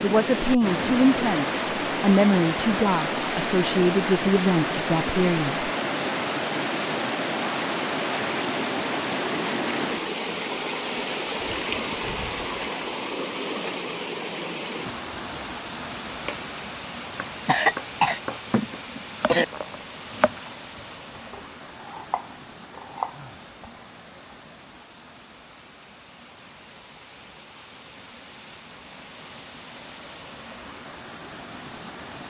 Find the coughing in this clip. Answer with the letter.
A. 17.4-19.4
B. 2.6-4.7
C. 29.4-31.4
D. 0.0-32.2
A.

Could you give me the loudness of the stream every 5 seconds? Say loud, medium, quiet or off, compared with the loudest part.
loud, loud, loud, medium, quiet, quiet, quiet.